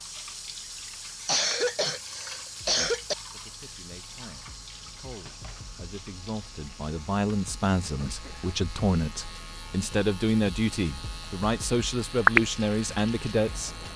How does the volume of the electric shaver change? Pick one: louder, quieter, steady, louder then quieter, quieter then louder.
louder.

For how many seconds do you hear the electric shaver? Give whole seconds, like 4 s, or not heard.
14 s.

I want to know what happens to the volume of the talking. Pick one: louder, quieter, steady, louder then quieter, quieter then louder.
louder.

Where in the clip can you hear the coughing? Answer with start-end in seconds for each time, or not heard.
1.2-3.1, 7.8-8.6.